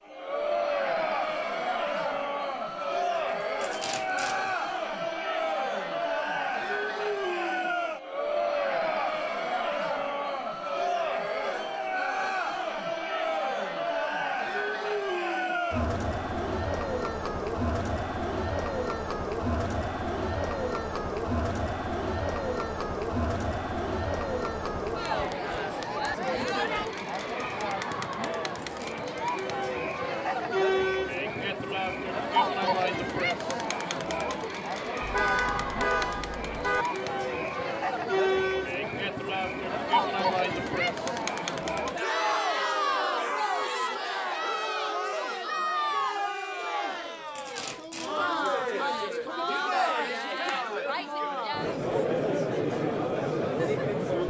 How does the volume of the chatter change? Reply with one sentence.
The loudness of the chatter stays about the same.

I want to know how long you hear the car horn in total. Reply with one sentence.
The car horn can be heard for 2 seconds in total.